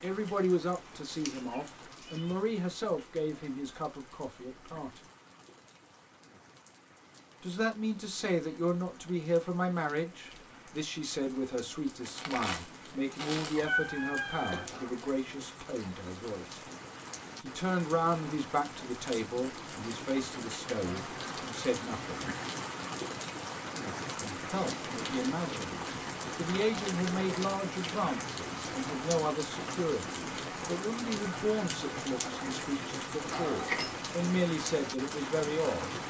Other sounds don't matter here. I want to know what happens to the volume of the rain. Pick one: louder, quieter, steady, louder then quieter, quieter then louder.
louder.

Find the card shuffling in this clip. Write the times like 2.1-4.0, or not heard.
12.0-13.7, 26.6-27.1.